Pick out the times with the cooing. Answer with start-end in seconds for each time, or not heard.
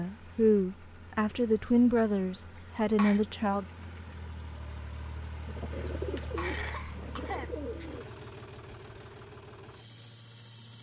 5.5-8.1.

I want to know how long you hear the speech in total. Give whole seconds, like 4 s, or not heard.
4 s.